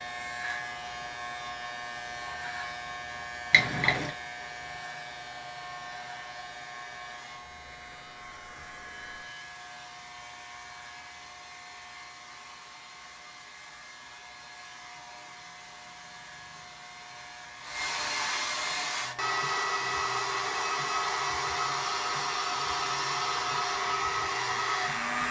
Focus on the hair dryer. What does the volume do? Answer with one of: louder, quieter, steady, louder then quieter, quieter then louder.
louder.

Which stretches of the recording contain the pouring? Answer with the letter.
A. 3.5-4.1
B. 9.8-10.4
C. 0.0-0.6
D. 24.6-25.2
A.